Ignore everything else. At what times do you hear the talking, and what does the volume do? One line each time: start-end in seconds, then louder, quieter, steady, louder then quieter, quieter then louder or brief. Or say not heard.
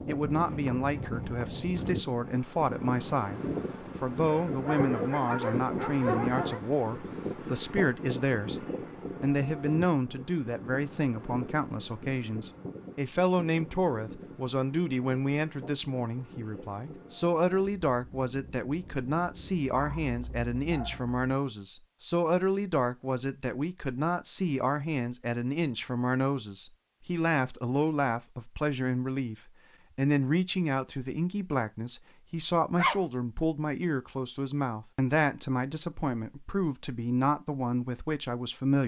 0.1-38.8 steady.